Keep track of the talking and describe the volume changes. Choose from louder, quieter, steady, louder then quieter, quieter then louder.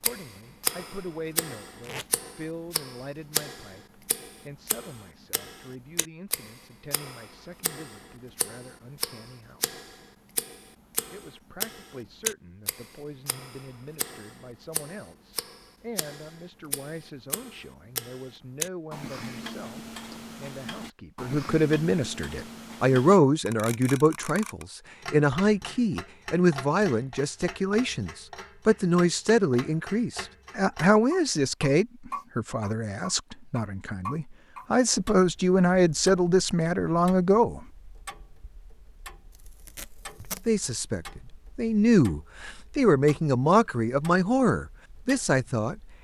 louder.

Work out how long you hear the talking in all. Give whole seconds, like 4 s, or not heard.
42 s.